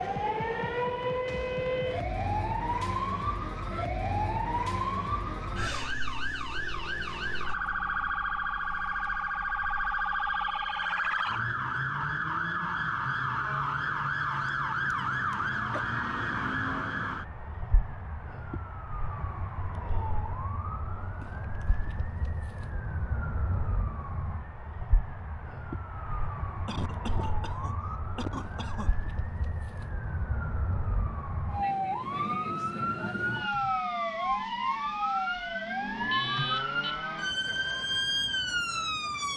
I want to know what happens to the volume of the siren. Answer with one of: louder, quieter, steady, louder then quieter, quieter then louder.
quieter then louder.